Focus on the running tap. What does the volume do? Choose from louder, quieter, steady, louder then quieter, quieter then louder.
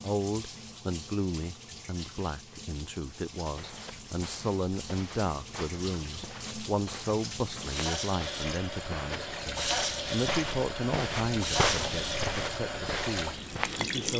louder.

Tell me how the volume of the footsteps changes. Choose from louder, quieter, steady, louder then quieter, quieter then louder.
louder.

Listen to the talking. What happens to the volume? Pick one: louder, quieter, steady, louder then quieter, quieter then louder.
steady.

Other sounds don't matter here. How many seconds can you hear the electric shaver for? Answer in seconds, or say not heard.
not heard.